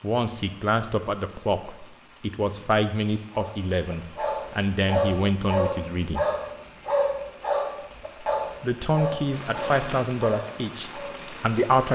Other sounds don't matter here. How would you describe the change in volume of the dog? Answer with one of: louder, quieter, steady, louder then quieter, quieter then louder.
quieter.